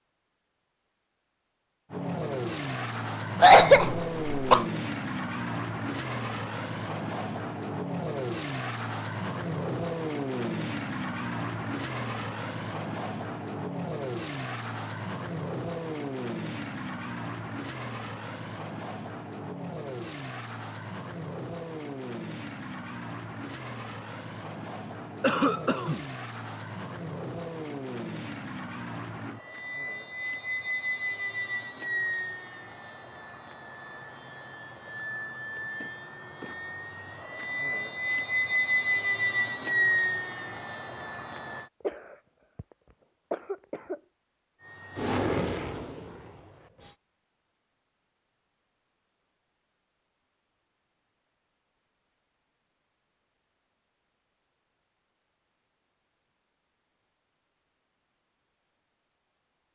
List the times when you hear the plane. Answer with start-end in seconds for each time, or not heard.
1.9-41.6, 44.6-47.0.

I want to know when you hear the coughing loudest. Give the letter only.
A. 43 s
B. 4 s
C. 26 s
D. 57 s
B.